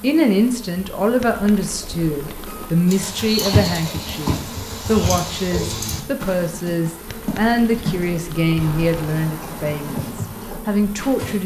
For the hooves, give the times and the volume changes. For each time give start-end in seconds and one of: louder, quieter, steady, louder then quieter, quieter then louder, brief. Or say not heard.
2.9-11.4 quieter.